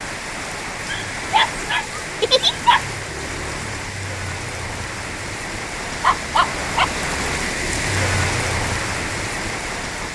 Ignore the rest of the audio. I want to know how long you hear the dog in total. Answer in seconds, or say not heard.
3 s.